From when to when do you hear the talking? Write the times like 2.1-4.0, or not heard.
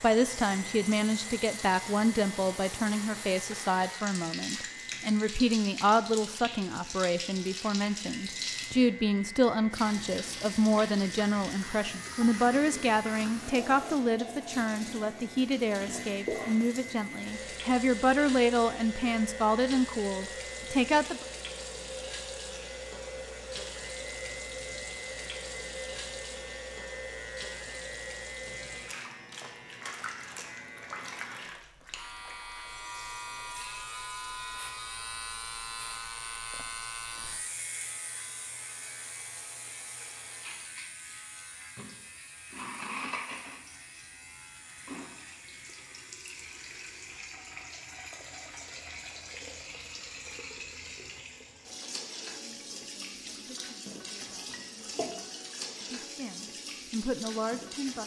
0.0-21.2, 52.4-58.0.